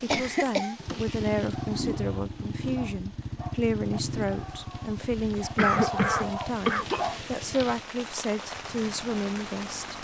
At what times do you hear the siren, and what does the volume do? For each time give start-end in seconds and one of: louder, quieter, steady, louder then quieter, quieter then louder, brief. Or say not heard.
not heard.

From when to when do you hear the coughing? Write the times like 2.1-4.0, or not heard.
0.1-0.8, 5.3-7.0.